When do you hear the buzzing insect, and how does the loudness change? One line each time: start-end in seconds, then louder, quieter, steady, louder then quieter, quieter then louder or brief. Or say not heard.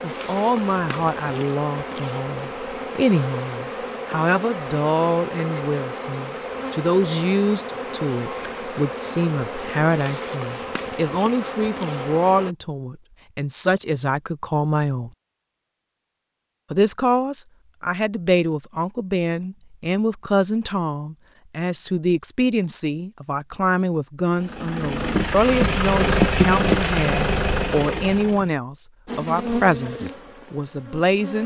0.0-12.6 steady
29.1-31.4 brief.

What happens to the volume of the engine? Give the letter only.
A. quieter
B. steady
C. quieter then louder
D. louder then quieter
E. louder
D.